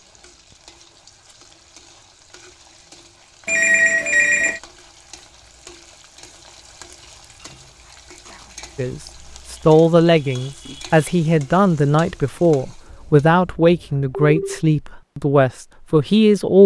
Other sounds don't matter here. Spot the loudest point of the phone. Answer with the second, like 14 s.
4 s.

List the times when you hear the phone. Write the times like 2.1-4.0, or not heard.
3.5-4.6, 12.9-14.6.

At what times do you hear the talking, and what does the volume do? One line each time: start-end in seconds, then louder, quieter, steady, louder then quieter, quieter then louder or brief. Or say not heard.
8.8-16.6 steady.